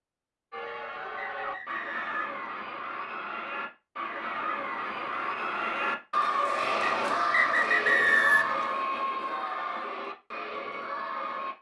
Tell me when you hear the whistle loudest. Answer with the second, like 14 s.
8 s.